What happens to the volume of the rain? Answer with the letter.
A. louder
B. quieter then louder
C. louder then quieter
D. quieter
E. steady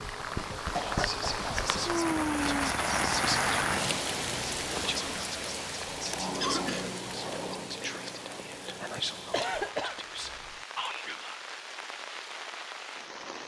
D.